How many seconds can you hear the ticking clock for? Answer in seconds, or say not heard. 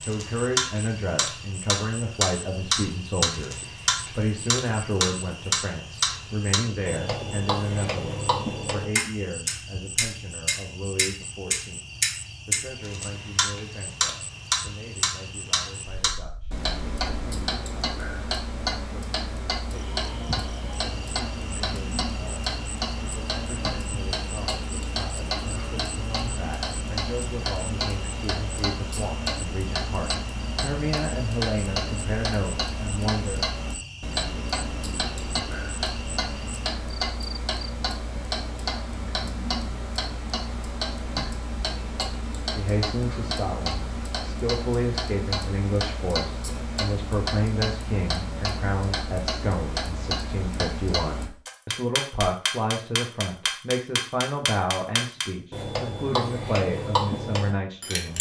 58 s.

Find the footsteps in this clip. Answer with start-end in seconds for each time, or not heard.
not heard.